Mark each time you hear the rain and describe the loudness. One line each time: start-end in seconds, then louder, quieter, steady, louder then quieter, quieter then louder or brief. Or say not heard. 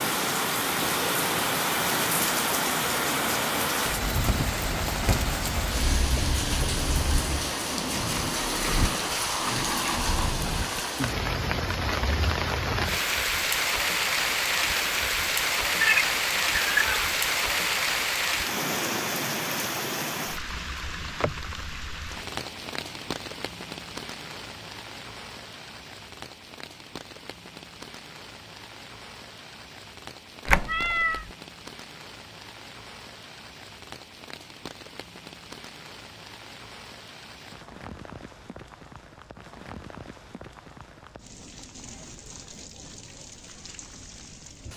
0.0-44.7 quieter.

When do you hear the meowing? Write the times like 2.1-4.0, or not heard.
15.7-17.1, 30.4-31.2.